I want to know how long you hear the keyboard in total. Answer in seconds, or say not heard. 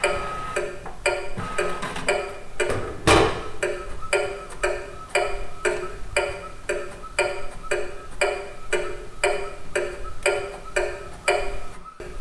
not heard.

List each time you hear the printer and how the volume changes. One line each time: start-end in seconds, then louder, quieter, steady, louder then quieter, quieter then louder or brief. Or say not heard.
0.0-12.1 louder then quieter.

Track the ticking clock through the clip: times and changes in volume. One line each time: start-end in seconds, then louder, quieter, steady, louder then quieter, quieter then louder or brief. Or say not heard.
0.0-12.1 steady.